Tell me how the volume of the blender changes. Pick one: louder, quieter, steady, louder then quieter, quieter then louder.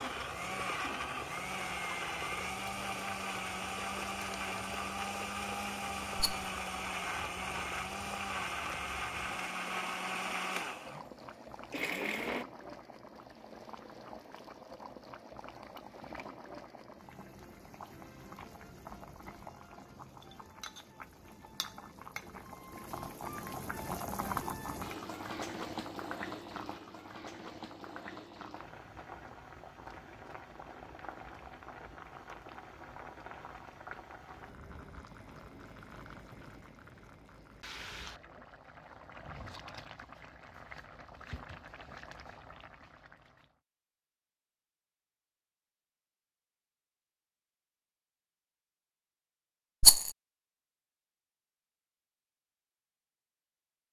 steady.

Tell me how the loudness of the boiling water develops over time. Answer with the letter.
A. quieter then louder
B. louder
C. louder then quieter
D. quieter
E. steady
C.